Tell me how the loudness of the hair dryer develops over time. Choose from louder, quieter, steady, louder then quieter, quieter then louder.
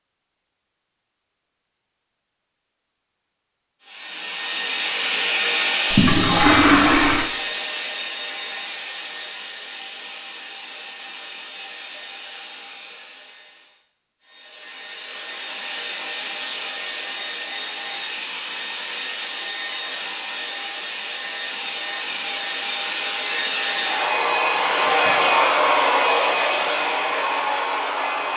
quieter then louder.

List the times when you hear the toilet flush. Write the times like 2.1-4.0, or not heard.
5.9-7.3.